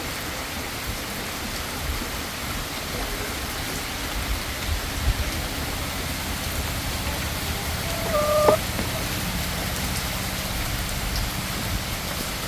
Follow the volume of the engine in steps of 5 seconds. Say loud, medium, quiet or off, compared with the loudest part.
medium, loud, loud.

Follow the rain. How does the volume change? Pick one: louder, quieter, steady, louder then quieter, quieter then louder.
steady.